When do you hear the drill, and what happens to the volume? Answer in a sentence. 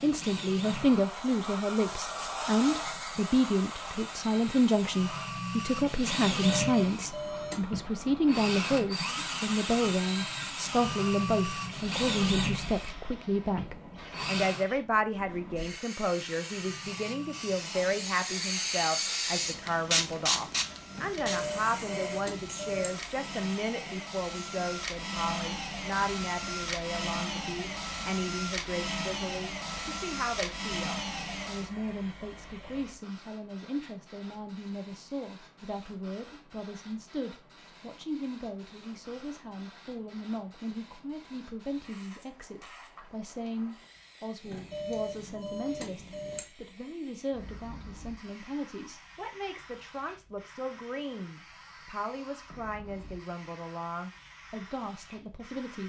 The drill can be heard from 0.0 to 14.7 s, getting louder; and from 16.1 to 31.8 s, getting louder.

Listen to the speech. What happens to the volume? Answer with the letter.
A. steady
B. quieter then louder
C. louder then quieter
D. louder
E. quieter
E.